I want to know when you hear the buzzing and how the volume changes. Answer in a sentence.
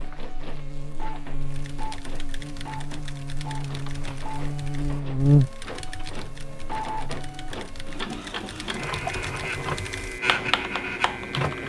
The buzzing can be heard from 0.0 to 8.0 s, getting louder then quieter.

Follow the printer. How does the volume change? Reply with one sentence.
The volume of the printer goes up.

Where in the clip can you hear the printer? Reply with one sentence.
The printer can be heard from 0.0 to 11.6 s.